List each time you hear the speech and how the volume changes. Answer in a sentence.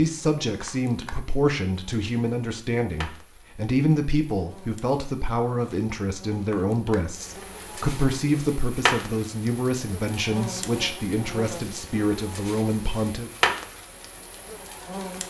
You can hear the speech from 0.0 to 13.3 s, at a steady volume.